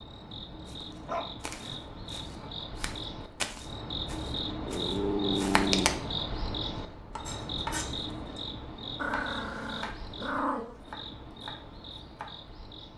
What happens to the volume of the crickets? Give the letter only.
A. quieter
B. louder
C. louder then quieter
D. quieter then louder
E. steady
C.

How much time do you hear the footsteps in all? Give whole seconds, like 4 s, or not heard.
5 s.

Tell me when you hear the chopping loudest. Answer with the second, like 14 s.
8 s.